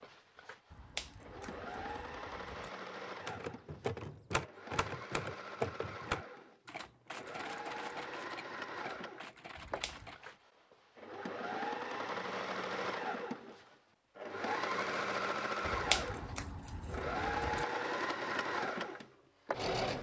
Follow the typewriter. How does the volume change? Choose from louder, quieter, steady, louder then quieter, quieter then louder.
quieter.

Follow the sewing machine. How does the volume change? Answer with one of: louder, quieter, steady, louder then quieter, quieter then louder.
louder.